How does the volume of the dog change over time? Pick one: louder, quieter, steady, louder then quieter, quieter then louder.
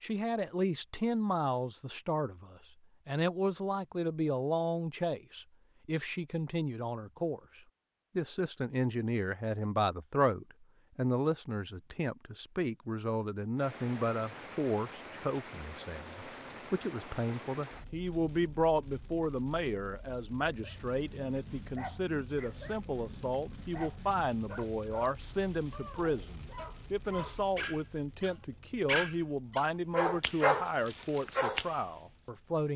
louder.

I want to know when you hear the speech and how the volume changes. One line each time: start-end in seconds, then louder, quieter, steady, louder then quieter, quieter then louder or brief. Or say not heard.
0.0-32.7 steady.